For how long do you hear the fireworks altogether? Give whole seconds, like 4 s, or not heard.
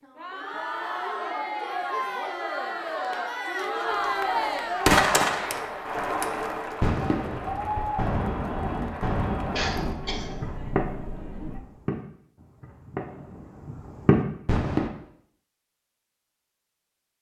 11 s.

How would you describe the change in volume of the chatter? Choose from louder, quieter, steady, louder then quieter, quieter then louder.
quieter.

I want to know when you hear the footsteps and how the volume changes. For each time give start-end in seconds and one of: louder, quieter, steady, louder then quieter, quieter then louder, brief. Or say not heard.
not heard.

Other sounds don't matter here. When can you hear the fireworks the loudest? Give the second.
5 s.